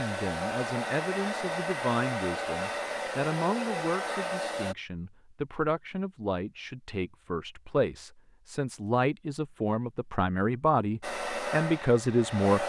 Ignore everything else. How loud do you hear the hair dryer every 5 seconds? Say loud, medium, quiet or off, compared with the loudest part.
loud, off, loud.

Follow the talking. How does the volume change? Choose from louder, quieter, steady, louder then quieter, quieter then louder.
louder.